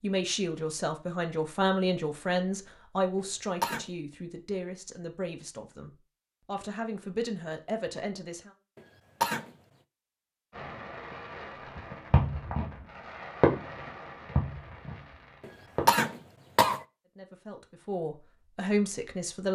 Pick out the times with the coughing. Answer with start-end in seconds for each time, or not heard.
3.1-3.9, 8.8-9.5, 15.4-16.8.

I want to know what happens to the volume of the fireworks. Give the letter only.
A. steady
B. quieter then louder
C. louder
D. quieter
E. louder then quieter
E.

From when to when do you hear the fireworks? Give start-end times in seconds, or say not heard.
10.6-15.9.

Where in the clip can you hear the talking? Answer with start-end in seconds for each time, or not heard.
0.0-8.5, 17.1-19.5.